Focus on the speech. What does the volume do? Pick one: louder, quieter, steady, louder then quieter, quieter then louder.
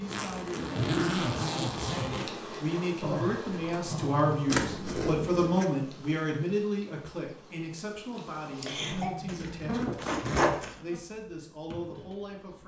louder then quieter.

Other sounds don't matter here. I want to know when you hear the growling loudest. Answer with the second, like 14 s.
3 s.